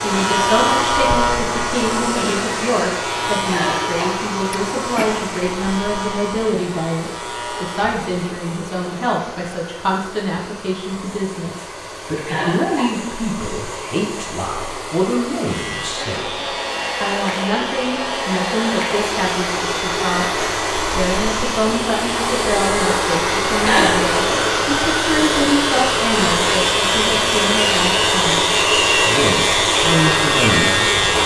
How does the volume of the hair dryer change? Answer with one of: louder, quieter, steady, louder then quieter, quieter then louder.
quieter then louder.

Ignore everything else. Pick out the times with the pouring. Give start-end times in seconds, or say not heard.
not heard.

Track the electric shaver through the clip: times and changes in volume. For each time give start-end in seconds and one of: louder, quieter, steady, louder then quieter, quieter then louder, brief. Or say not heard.
0.0-8.3 quieter
15.4-31.2 louder.